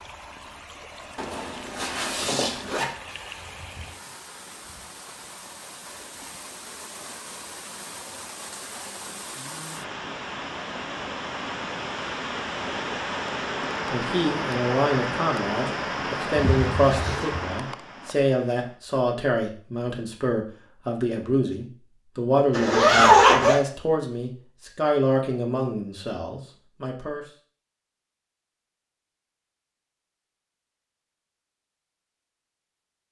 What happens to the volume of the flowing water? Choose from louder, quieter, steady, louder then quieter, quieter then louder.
louder.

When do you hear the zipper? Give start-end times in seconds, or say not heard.
1.1-2.9, 16.3-17.4, 22.5-23.6.